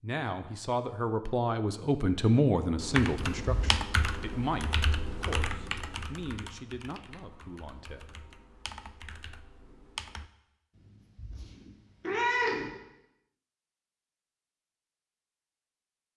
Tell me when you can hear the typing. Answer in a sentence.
You can hear the typing from 2.8 to 10.3 s.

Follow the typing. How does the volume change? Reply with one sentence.
The volume of the typing goes down, then up.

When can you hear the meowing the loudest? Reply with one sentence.
The volume of the meowing peaks at 12 seconds.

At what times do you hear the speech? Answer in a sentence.
You can hear the speech from 0.0 to 8.1 s.